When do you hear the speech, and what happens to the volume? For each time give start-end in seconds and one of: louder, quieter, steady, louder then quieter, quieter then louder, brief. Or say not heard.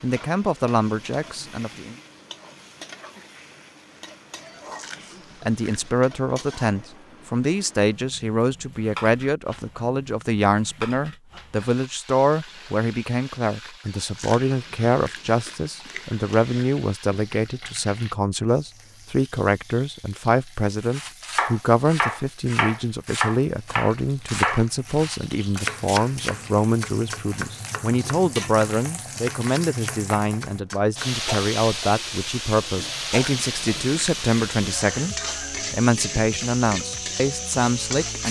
0.0-1.9 brief
5.4-38.2 steady.